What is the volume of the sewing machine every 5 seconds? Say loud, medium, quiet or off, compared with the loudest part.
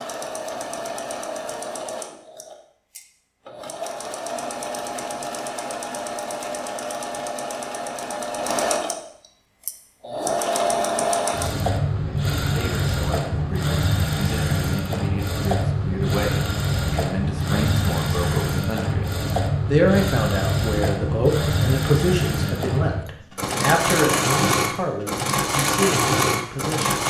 medium, medium, loud, loud, loud, loud.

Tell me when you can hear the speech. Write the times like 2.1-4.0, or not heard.
12.3-26.9.